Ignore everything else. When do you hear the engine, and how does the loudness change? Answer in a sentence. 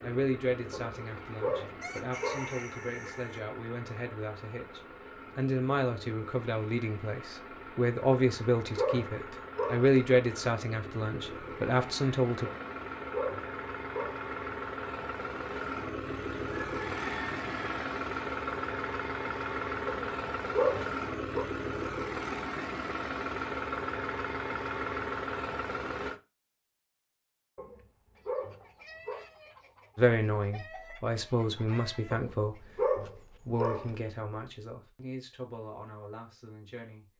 You can hear the engine from 0.0 to 26.2 s, getting louder.